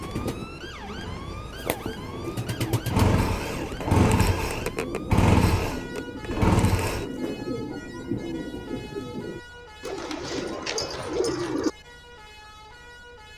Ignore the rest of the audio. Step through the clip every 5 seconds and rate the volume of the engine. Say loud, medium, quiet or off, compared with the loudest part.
medium, loud, off.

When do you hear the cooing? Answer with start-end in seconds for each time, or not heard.
0.0-11.7.